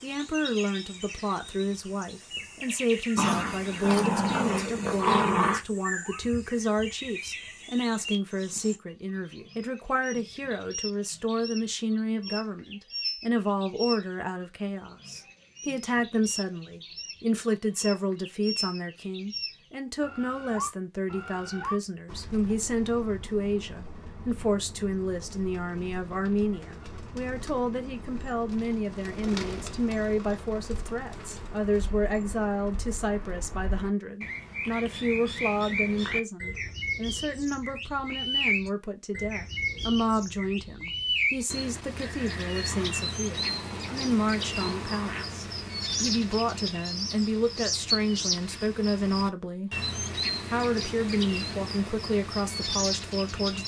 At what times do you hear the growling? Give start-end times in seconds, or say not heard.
3.1-5.6, 42.7-45.2.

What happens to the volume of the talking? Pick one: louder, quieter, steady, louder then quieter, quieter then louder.
steady.